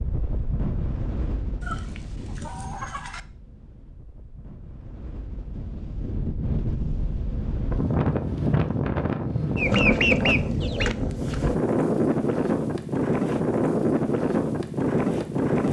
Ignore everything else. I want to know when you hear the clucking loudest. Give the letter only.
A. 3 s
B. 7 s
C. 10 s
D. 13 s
C.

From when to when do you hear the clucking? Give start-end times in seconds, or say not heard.
1.6-3.2, 9.6-10.9.